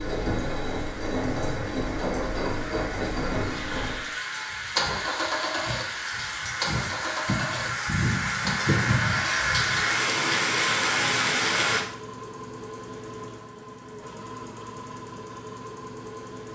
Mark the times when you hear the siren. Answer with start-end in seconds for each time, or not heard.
not heard.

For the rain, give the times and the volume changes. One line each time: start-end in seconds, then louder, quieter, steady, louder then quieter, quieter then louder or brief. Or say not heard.
0.0-11.8 louder.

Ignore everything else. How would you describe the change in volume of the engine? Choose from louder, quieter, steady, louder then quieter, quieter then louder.
quieter.